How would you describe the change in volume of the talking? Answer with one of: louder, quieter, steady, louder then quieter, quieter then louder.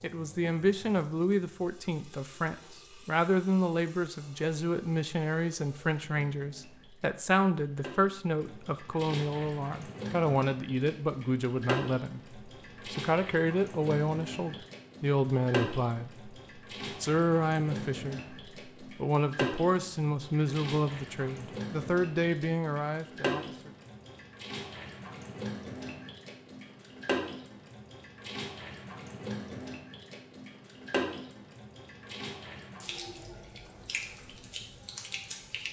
steady.